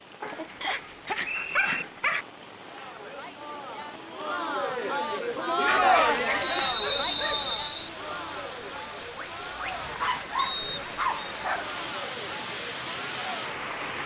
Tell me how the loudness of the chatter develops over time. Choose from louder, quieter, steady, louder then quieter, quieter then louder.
louder then quieter.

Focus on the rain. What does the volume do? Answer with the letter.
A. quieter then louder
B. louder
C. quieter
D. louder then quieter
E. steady
B.